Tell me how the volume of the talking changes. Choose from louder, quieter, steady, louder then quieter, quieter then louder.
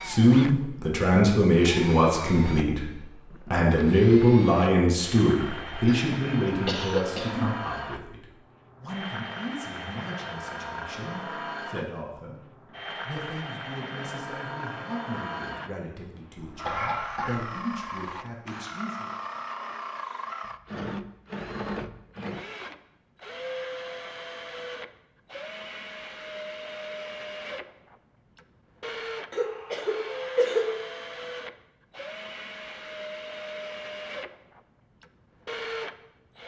quieter.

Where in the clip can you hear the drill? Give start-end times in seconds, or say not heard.
0.0-36.4.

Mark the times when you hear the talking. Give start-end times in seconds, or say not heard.
0.1-12.4, 13.1-19.1.